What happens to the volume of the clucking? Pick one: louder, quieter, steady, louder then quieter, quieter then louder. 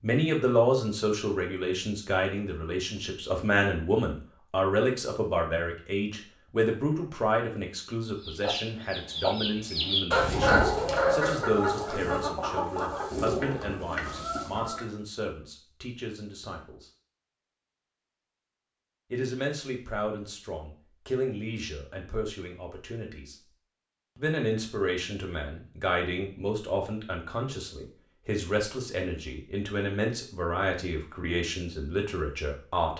louder then quieter.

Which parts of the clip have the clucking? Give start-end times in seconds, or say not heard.
8.2-14.9.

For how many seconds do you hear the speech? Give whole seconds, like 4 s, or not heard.
30 s.